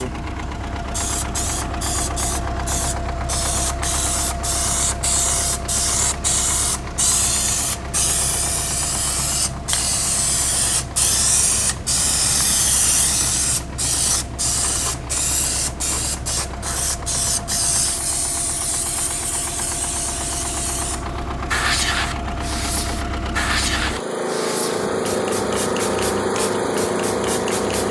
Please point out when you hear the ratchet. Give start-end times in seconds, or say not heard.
not heard.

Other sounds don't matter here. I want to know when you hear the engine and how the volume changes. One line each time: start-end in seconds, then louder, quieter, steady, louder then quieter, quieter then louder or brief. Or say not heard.
0.0-27.8 quieter then louder.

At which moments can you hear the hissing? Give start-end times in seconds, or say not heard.
0.0-27.8.